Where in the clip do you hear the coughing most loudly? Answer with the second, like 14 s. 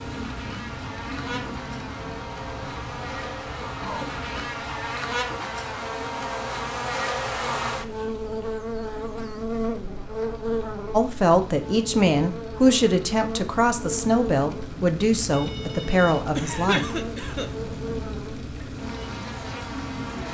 17 s.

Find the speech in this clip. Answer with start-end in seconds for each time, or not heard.
10.9-16.9.